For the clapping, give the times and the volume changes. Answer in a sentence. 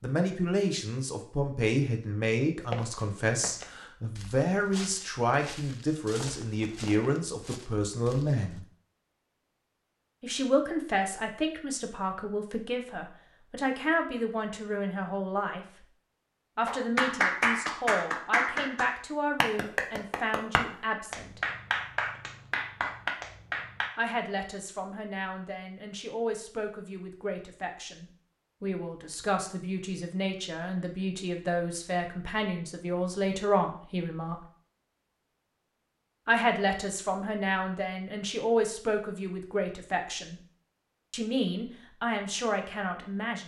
The clapping can be heard from 16.6 to 23.9 s, getting quieter.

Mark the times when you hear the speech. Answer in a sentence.
The speech can be heard from 0.0 to 8.7 s, from 10.2 to 15.8 s, from 16.6 to 21.4 s, from 23.9 to 34.4 s, from 36.2 to 40.4 s and from 41.1 to 43.4 s.